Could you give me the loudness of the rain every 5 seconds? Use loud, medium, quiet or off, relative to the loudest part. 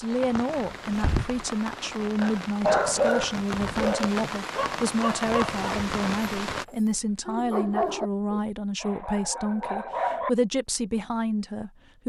loud, loud, off.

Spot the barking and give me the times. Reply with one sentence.
The barking can be heard from 2.2 to 10.3 s.